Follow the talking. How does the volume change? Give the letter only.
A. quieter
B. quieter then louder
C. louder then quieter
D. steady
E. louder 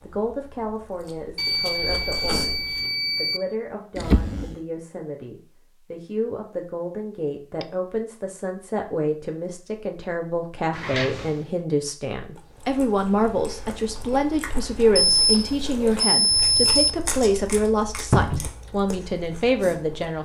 E.